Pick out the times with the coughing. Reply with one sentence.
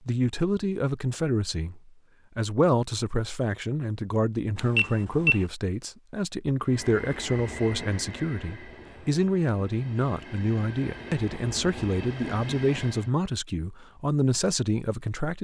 You can't hear the coughing here.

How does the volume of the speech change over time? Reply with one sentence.
The volume of the speech stays about the same.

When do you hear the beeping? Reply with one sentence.
The beeping can be heard from 4.5 to 5.5 s.